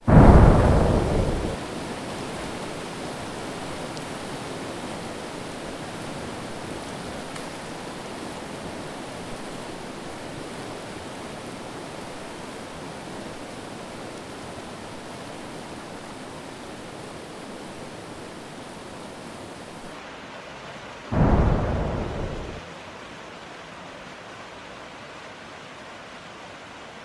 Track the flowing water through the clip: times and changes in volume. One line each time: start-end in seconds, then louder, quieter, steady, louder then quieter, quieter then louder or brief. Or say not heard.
0.0-27.0 quieter.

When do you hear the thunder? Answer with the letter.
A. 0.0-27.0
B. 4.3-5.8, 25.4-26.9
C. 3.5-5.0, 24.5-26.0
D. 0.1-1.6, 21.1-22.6
D.